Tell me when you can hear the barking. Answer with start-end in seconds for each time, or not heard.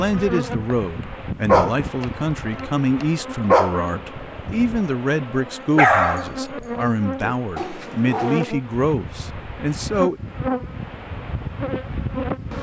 1.4-4.8, 5.8-8.5.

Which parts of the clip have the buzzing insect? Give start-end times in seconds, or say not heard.
0.0-12.5.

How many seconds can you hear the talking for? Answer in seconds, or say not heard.
10 s.